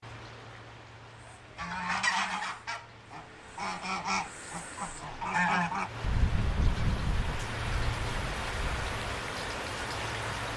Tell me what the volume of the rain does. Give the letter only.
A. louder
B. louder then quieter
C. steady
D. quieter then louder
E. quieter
A.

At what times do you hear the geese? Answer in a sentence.
The geese can be heard from 1.2 to 8.9 s.